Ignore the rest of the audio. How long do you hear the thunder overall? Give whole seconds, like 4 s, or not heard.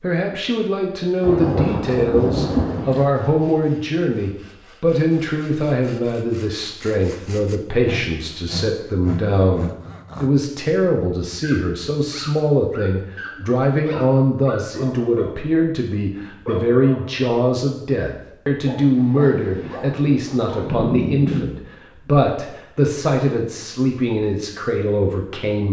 4 s.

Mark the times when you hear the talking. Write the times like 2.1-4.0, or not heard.
0.0-25.6.